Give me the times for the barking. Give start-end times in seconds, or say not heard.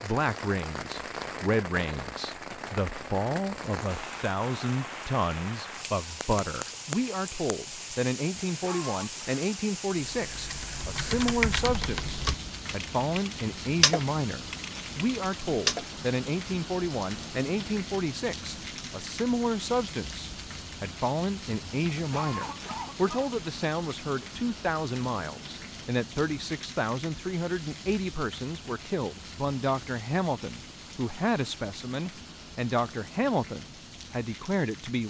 not heard.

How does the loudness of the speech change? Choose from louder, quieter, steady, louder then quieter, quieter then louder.
steady.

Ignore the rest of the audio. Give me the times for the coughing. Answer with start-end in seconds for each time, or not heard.
8.4-9.3, 21.9-23.4.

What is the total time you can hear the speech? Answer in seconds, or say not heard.
35 s.